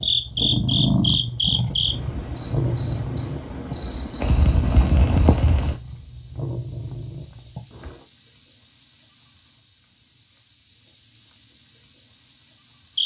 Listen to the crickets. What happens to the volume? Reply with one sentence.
The volume of the crickets stays about the same.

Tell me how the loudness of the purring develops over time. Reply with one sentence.
The volume of the purring goes down.